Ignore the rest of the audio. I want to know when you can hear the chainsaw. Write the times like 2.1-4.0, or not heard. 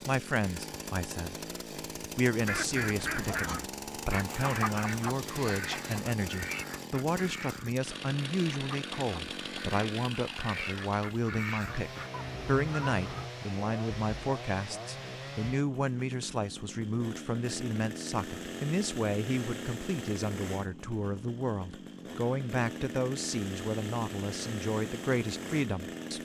0.0-26.2.